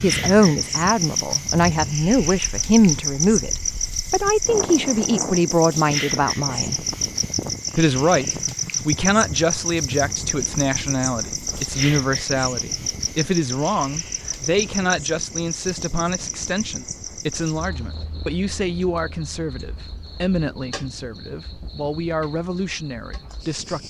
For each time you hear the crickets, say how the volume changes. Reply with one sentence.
You can hear the crickets from 0.0 to 23.8 s, getting quieter.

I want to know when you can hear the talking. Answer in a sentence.
You can hear the talking from 0.0 to 6.8 s and from 7.8 to 23.8 s.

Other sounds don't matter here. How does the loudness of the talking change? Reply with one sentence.
The loudness of the talking goes down.